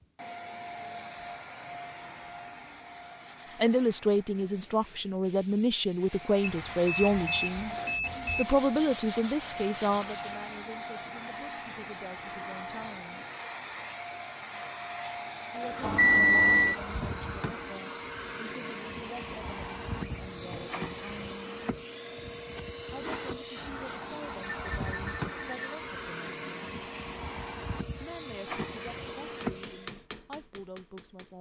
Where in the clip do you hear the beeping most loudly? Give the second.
16 s.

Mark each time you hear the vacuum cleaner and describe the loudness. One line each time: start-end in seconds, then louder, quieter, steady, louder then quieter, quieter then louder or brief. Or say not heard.
0.0-4.6 quieter
6.0-30.1 steady.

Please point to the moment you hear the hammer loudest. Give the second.
30 s.